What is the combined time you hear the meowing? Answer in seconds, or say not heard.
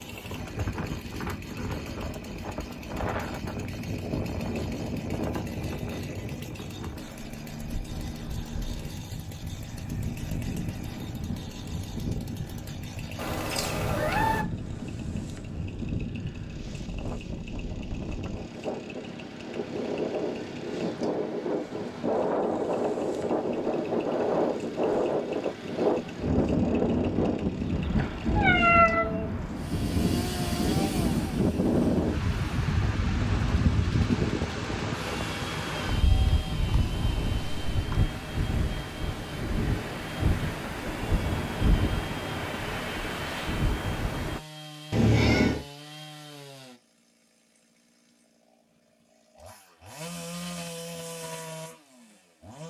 3 s.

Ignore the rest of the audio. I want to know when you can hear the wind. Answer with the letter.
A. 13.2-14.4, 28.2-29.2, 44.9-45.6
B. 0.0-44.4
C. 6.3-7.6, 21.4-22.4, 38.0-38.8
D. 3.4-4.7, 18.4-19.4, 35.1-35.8
B.